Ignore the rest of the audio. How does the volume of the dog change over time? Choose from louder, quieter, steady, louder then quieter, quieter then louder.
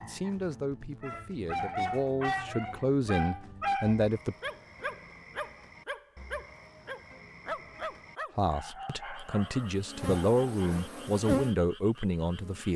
quieter.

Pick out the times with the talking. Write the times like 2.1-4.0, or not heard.
0.0-4.3, 8.3-12.7.